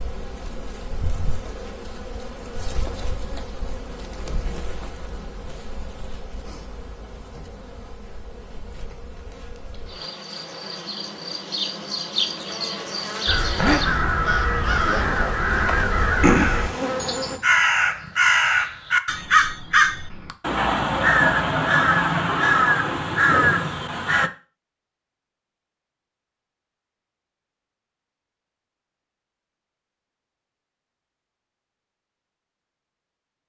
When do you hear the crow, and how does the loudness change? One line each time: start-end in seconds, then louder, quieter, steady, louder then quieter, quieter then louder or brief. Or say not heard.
13.2-24.3 steady.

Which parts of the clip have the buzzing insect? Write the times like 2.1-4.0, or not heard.
0.0-17.4.